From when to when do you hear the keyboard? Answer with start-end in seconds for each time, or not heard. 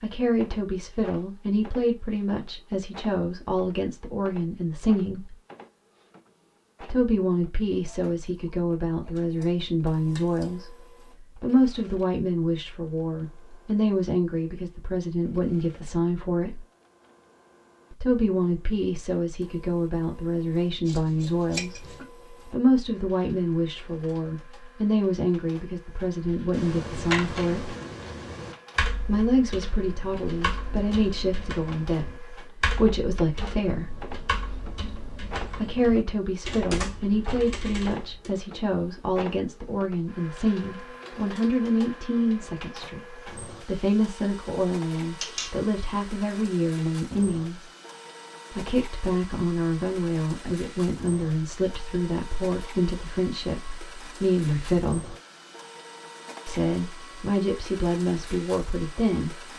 26.4-38.3.